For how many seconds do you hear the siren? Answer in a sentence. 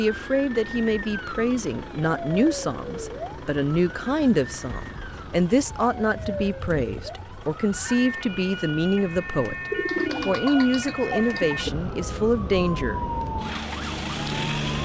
You can hear the siren for 15 seconds altogether.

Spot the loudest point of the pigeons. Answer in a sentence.
The volume of the pigeons peaks at 10 seconds.